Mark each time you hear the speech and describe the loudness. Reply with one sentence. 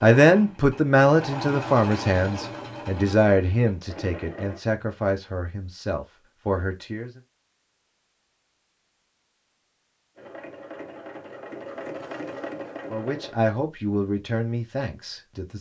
You can hear the speech from 0.0 to 7.2 s, getting quieter; and briefly from 12.9 to 15.5 s.